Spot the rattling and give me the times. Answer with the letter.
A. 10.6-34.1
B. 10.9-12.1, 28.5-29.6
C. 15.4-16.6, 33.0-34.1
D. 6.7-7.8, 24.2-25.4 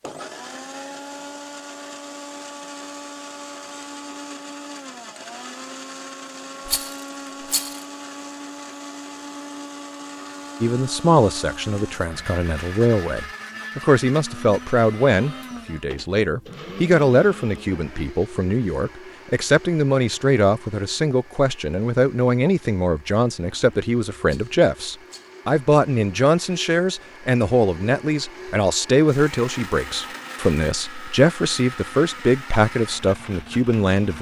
D.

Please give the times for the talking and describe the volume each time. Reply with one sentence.
The talking can be heard from 10.6 to 34.1 s, at a steady volume.